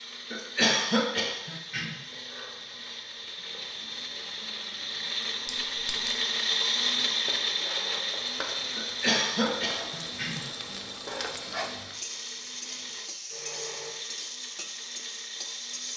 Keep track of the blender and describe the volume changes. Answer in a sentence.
The volume of the blender goes up, then down.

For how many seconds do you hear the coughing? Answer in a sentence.
You can hear the coughing for 3 seconds altogether.